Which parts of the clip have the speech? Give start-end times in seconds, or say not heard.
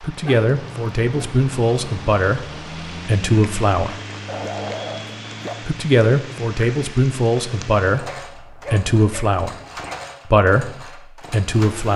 0.0-4.0, 5.7-9.6, 10.2-11.9.